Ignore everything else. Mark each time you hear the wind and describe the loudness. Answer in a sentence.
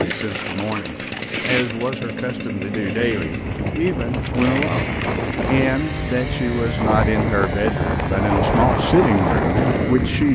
The wind can be heard from 3.2 to 10.2 s, getting louder.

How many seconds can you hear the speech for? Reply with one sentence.
The speech can be heard for 10 seconds in total.